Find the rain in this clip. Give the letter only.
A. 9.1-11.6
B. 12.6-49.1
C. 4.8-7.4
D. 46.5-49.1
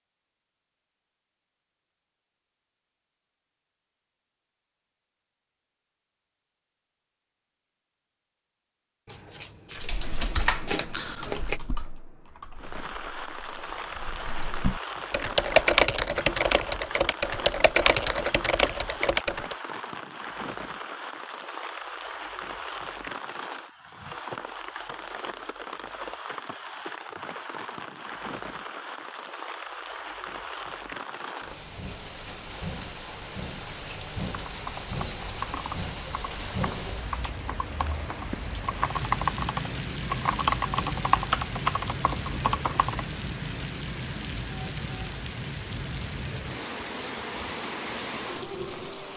B.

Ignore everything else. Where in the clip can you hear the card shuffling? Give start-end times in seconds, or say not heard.
9.1-11.6.